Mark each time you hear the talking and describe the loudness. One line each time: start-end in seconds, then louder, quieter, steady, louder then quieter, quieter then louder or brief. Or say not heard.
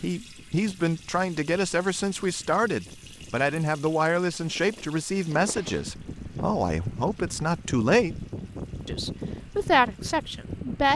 0.0-8.2 steady
8.8-10.9 brief.